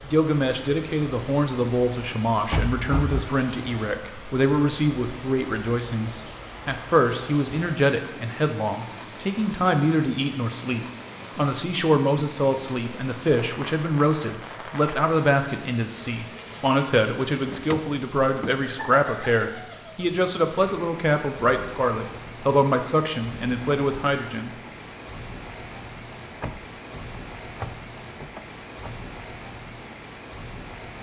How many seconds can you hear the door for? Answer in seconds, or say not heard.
5 s.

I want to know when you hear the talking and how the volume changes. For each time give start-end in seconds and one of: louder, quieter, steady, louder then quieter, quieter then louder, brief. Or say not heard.
0.0-24.6 steady.